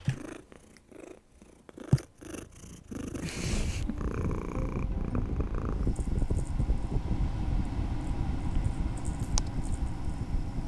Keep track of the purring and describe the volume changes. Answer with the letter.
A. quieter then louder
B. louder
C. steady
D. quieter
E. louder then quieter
A.